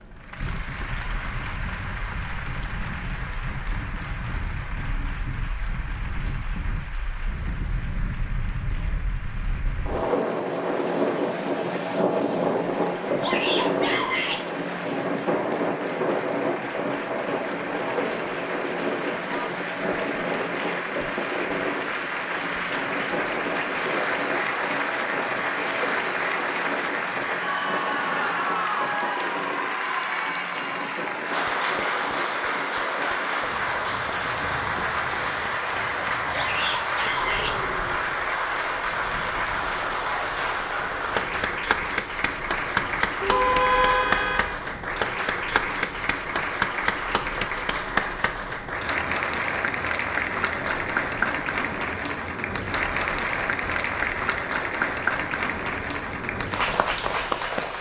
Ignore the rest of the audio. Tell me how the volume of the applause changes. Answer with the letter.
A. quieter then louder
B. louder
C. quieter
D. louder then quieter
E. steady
B.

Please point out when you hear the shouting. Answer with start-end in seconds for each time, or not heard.
13.2-14.4, 36.3-37.5.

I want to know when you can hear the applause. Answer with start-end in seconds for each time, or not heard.
0.0-57.7.